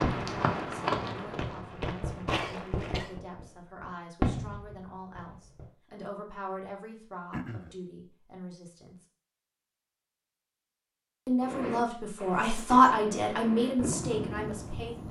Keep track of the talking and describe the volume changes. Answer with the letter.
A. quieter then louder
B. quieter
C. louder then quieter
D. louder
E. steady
D.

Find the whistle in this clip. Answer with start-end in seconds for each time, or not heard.
not heard.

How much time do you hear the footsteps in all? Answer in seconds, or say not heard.
3 s.